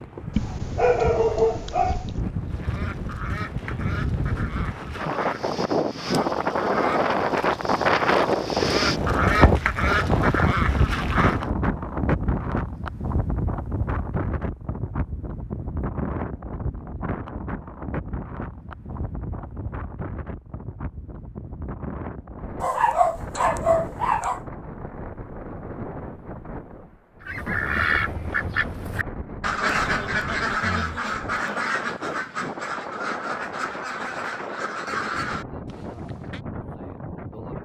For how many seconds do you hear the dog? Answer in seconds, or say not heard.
4 s.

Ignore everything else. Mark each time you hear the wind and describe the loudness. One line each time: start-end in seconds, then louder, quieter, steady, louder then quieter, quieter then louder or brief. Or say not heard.
0.0-37.6 quieter.